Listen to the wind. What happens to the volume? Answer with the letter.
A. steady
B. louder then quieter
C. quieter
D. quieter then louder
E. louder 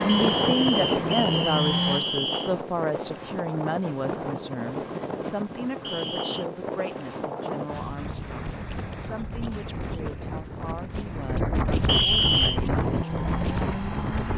D.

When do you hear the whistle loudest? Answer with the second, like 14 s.
12 s.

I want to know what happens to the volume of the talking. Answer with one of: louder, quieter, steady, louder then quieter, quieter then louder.
quieter.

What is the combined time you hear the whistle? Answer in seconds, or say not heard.
4 s.